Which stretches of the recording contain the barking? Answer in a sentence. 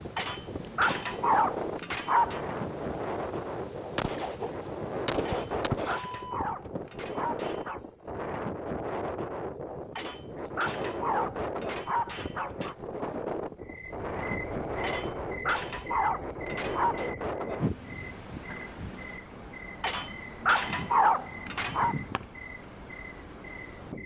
The barking can be heard from 0.1 to 2.4 s, from 5.2 to 7.8 s, from 9.9 to 12.8 s, from 14.8 to 17.1 s and from 19.8 to 21.9 s.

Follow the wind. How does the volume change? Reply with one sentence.
The loudness of the wind goes down.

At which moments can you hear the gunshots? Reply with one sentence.
The gunshots can be heard from 4.0 to 6.0 s.